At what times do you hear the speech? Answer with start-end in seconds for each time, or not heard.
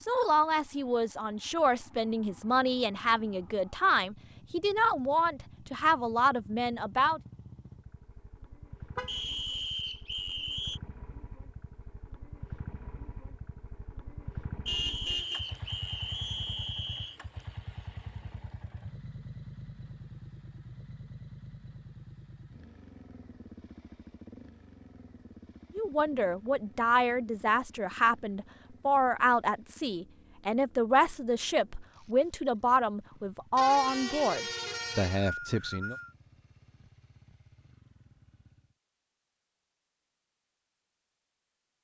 0.0-7.2, 25.8-36.0.